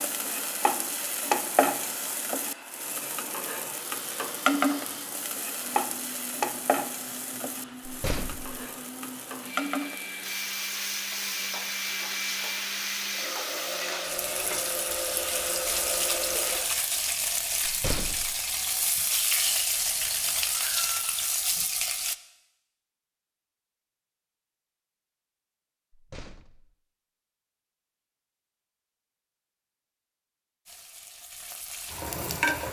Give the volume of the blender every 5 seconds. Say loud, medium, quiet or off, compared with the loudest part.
medium, medium, loud, loud, off, off, off.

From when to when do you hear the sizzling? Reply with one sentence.
You can hear the sizzling from 0.0 to 22.1 s and from 30.6 to 32.6 s.